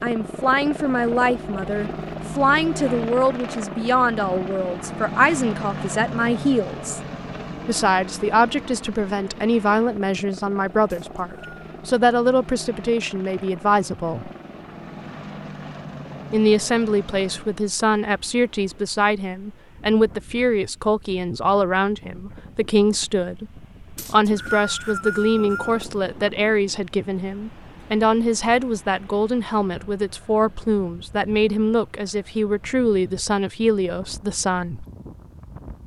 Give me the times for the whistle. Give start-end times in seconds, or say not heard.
10.9-11.7, 23.9-25.9.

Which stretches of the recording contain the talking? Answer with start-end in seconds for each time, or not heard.
0.0-7.0, 7.7-14.3, 16.3-34.9.